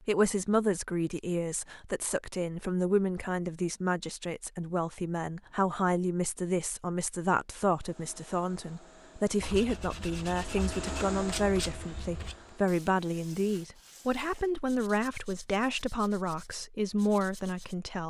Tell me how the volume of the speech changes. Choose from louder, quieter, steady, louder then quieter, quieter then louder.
steady.